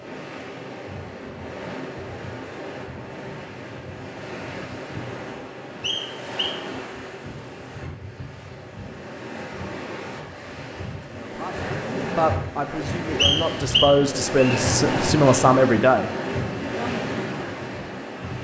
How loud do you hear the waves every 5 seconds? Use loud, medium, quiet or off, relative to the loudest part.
medium, medium, loud, loud.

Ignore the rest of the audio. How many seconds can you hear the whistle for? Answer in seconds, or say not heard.
2 s.